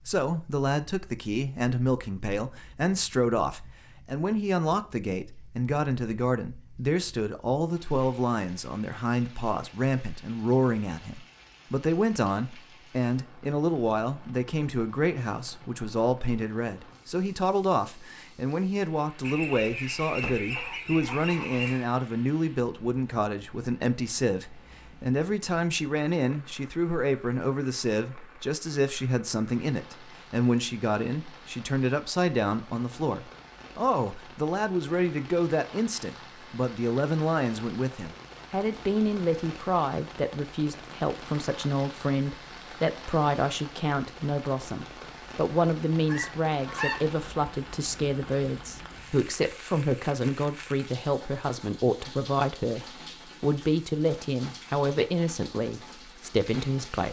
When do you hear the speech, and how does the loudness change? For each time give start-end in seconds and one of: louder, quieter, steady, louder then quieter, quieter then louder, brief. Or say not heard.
0.1-57.0 steady.